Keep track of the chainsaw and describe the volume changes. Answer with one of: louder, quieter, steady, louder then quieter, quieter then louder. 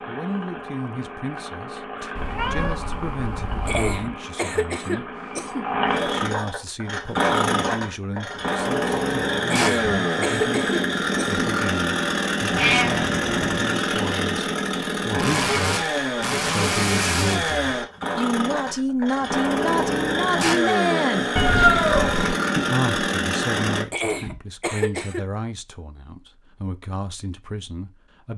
louder.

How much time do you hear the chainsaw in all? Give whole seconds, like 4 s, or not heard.
24 s.